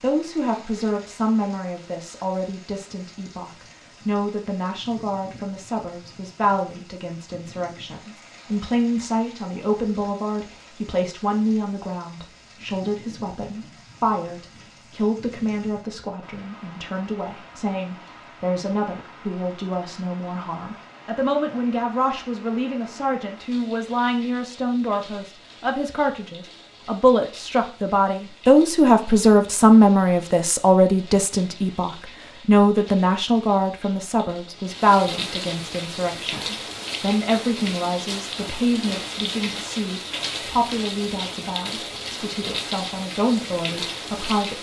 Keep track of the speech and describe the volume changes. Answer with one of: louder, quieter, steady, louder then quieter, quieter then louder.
louder then quieter.